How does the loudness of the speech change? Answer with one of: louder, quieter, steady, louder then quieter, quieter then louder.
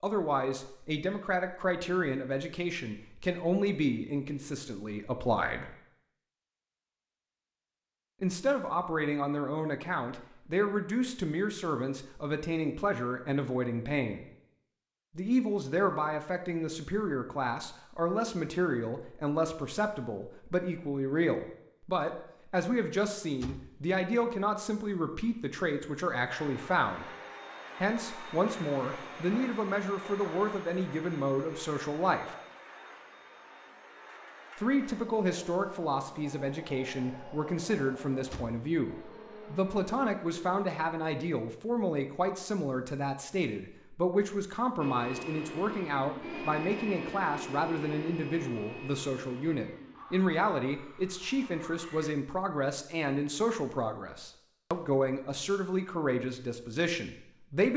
steady.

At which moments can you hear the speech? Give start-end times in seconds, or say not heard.
0.0-5.7, 8.2-14.2, 15.2-27.1, 27.8-32.4, 34.5-57.7.